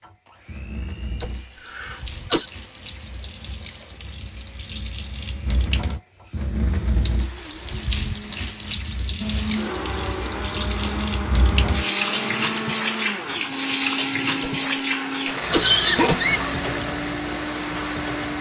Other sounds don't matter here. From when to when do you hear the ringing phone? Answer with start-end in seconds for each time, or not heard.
not heard.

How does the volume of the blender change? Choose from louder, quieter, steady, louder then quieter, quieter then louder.
louder.